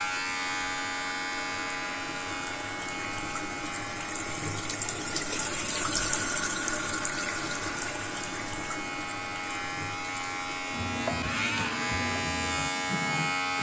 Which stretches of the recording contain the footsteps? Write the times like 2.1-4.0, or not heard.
not heard.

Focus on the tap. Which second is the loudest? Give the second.
6 s.